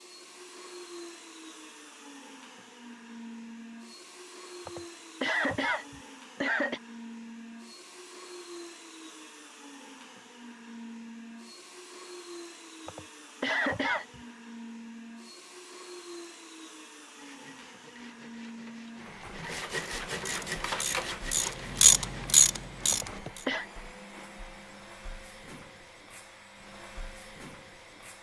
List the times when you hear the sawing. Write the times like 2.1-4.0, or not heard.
17.1-23.2.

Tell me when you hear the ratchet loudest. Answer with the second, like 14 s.
22 s.